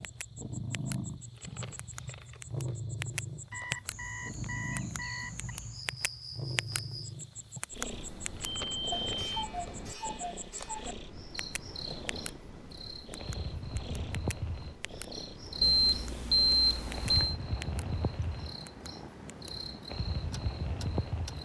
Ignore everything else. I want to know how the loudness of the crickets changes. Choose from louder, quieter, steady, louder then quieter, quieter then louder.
louder.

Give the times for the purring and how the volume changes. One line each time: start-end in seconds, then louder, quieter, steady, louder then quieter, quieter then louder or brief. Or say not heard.
0.0-21.3 quieter.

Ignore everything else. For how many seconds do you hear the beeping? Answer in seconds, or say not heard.
6 s.